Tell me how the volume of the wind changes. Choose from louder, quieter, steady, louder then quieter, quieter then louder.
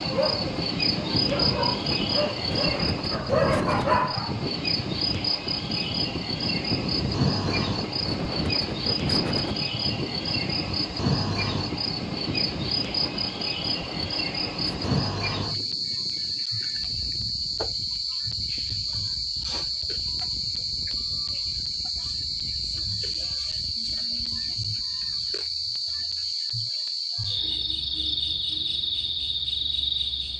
quieter.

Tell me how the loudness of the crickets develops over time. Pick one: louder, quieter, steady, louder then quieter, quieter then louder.
steady.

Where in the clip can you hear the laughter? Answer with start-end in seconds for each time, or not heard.
not heard.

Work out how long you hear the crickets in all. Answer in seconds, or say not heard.
30 s.